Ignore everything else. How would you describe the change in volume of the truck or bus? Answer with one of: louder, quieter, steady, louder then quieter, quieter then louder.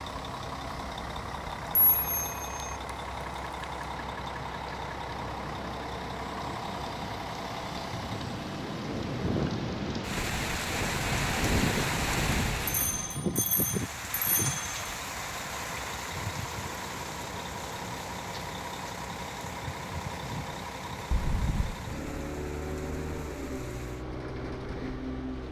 steady.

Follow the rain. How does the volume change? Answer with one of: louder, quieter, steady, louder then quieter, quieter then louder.
louder then quieter.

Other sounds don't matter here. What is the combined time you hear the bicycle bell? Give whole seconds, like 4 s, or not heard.
4 s.